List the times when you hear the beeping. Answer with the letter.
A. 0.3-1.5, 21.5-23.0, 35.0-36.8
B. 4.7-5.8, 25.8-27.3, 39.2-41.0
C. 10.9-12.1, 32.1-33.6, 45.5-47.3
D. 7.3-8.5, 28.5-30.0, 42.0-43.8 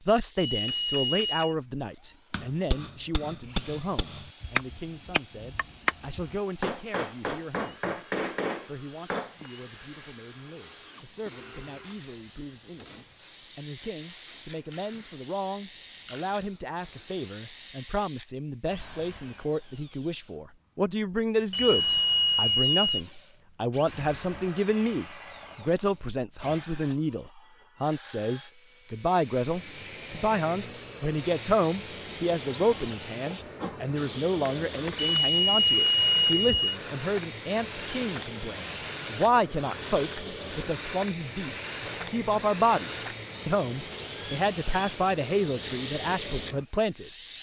A.